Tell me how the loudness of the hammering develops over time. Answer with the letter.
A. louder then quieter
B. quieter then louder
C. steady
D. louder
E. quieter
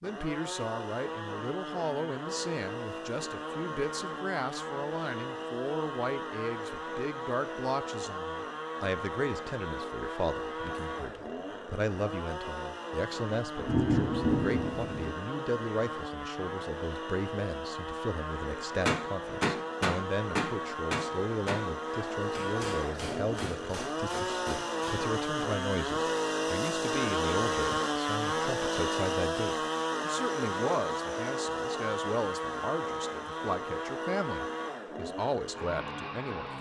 E.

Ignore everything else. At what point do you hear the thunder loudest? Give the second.
14 s.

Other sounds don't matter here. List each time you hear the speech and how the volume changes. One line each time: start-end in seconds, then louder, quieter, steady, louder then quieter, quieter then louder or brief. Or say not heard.
0.0-36.5 steady.